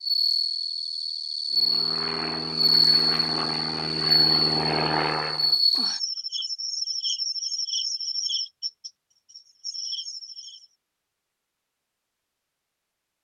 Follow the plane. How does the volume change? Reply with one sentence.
The volume of the plane goes up.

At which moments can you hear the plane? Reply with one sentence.
You can hear the plane from 1.5 to 5.6 s.